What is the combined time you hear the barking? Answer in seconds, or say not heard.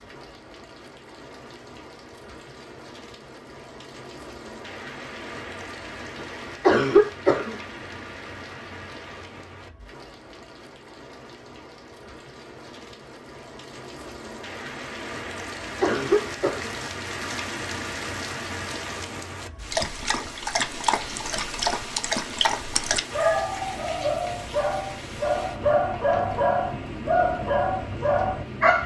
9 s.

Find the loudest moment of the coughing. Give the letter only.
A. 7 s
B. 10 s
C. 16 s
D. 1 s
A.